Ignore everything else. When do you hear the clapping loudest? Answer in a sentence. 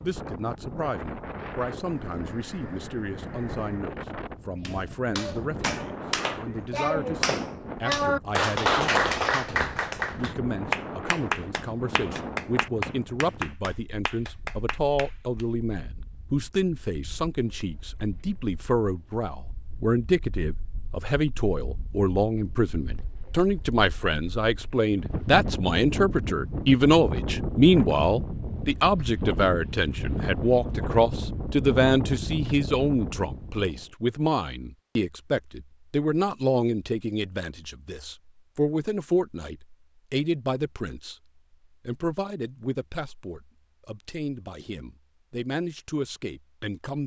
The volume of the clapping peaks at 9 seconds.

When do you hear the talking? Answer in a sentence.
You can hear the talking from 0.0 to 41.1 s and from 41.9 to 47.0 s.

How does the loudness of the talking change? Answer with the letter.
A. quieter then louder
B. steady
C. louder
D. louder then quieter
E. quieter
D.